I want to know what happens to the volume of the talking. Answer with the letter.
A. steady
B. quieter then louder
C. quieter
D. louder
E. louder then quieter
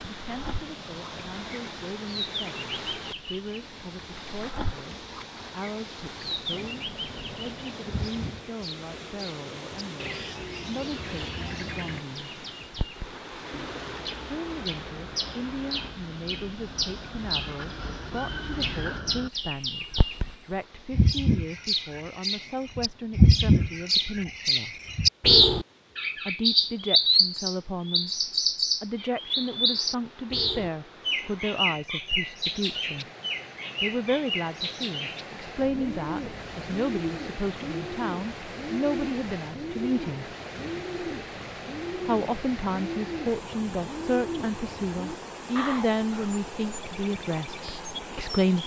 D.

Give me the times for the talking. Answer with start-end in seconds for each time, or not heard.
0.1-12.4, 14.2-24.8, 26.1-33.0, 33.8-40.2, 42.0-48.6.